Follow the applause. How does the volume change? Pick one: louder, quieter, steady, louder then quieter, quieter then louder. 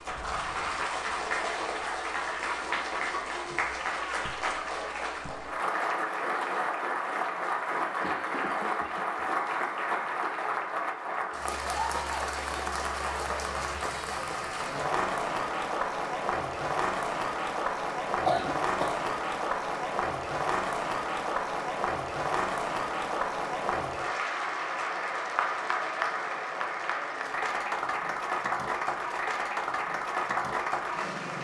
steady.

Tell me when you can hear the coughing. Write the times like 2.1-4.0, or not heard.
8.0-9.2, 18.1-19.1.